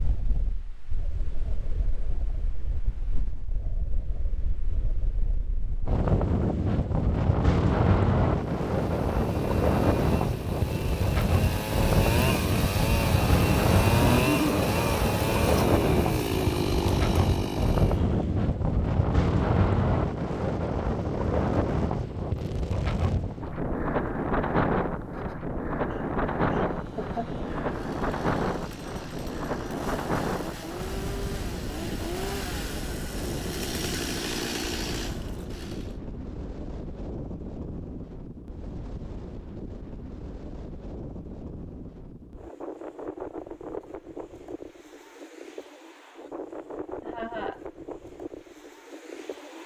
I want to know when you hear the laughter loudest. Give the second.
14 s.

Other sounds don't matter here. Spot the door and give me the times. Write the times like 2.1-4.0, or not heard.
not heard.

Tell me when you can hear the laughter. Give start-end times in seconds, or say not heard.
14.0-14.6, 25.9-27.3, 47.0-47.6.